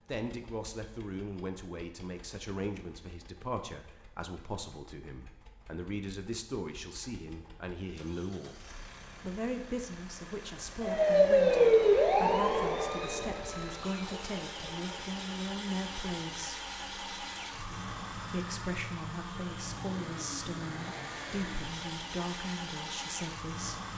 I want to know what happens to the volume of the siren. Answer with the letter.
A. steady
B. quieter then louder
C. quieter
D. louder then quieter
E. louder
C.